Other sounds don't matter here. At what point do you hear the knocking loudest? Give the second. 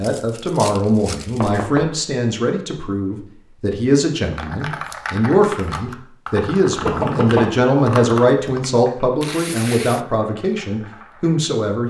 7 s.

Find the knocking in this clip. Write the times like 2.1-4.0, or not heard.
1.4-2.0, 6.8-7.6.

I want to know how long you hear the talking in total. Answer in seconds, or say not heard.
12 s.